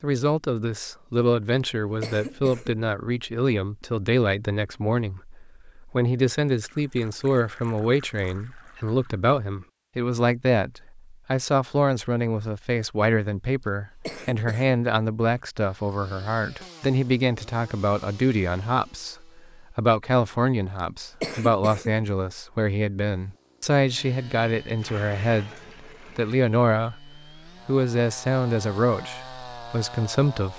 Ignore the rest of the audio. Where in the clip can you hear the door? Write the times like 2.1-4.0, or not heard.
not heard.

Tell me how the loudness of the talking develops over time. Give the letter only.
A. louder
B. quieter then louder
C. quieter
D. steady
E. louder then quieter
D.